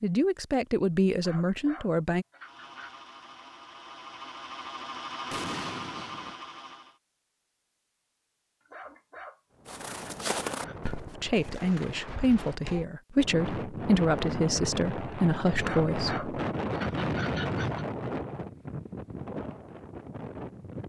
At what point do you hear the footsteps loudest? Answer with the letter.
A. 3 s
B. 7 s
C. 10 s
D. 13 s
C.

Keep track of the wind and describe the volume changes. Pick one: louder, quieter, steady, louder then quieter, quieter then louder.
louder then quieter.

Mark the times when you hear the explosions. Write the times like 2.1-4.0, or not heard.
5.3-6.3.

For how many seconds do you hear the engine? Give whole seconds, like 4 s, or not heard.
5 s.